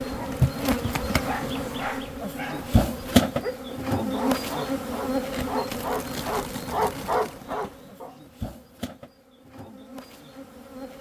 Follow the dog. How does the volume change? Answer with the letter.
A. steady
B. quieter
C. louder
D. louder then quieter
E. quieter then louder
C.